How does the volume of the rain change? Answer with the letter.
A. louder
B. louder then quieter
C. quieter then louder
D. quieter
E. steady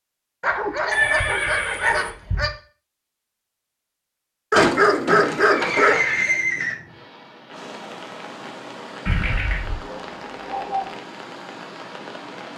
A.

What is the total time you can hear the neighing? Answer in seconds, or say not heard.
4 s.